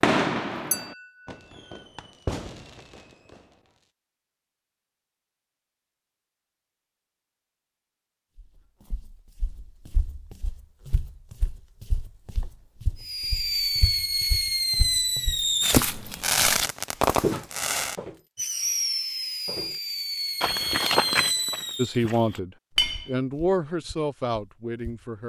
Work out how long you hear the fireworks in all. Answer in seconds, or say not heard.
13 s.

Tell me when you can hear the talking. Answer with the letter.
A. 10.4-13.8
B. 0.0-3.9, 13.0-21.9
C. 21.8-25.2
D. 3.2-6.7
C.